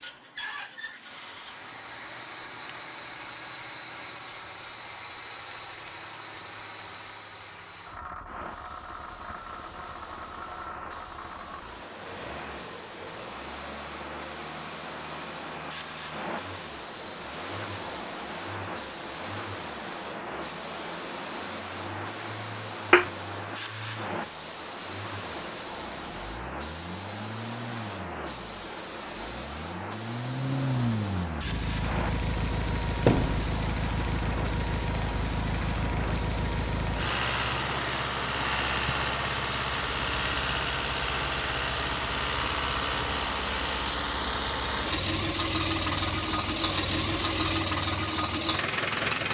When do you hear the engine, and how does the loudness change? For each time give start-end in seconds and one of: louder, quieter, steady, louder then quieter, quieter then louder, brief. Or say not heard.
0.0-49.2 louder.